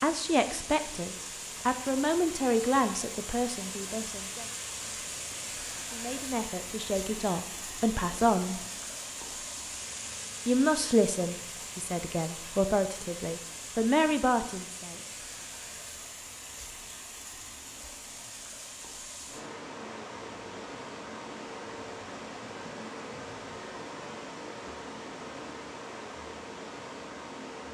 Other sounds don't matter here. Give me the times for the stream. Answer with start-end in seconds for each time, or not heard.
0.0-27.6.